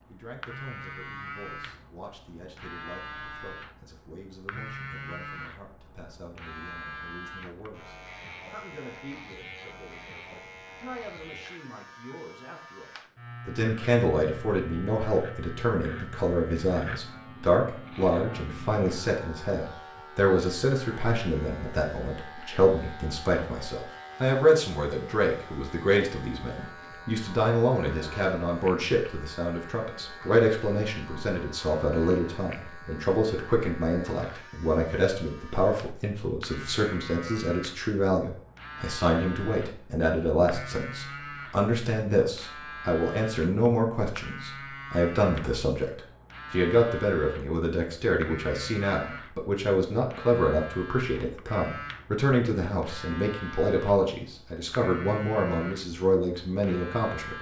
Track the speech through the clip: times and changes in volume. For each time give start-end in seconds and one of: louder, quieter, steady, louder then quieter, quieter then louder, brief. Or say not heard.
0.1-57.3 louder.